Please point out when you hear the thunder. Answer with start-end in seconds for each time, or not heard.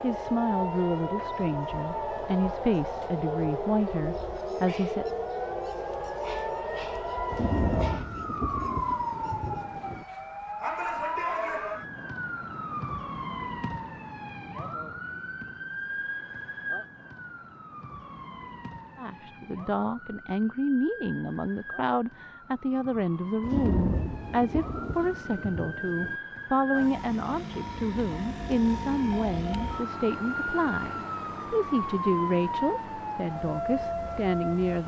7.3-10.1, 23.4-26.2.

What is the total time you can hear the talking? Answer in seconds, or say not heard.
21 s.